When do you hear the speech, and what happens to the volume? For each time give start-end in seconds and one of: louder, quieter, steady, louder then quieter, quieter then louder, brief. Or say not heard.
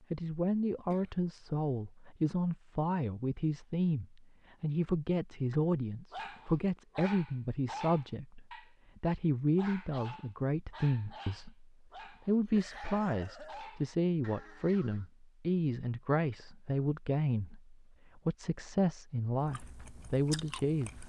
0.1-21.0 steady.